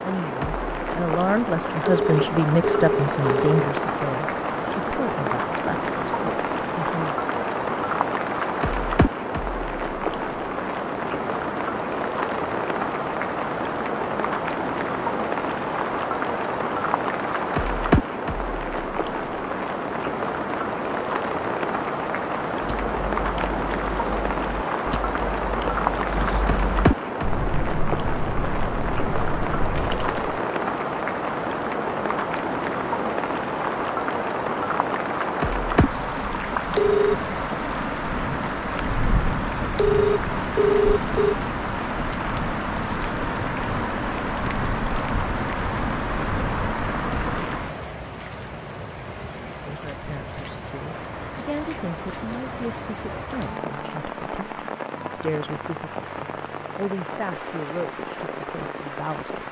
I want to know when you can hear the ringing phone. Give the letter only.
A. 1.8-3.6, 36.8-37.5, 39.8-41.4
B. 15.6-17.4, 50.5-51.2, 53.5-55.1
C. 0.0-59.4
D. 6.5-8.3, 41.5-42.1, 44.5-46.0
A.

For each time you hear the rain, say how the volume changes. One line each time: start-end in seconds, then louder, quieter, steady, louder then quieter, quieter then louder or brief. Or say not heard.
0.0-59.4 quieter.